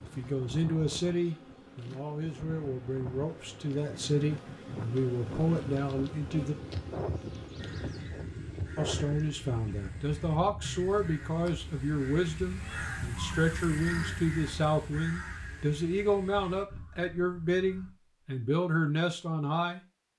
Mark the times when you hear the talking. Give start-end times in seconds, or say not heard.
0.0-6.5, 8.8-19.8.